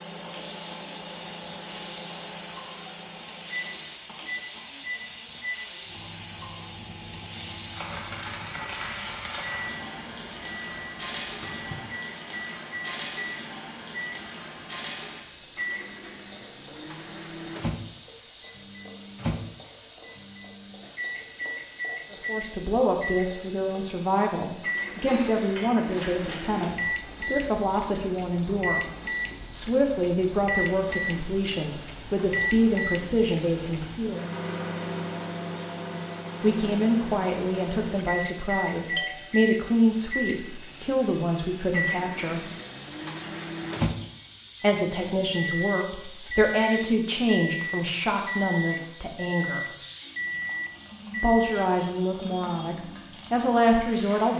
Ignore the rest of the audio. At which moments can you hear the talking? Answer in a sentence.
The talking can be heard from 22.1 to 28.9 s, from 29.5 to 34.2 s, from 36.4 to 42.5 s, from 44.6 to 49.6 s and from 51.2 to 54.3 s.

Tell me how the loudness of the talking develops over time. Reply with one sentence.
The volume of the talking stays about the same.